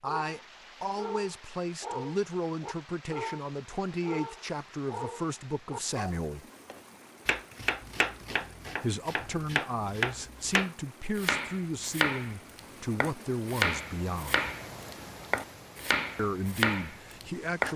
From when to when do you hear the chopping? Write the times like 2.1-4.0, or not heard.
6.7-17.7.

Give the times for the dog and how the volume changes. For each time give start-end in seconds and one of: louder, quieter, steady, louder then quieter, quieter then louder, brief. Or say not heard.
0.0-6.2 steady.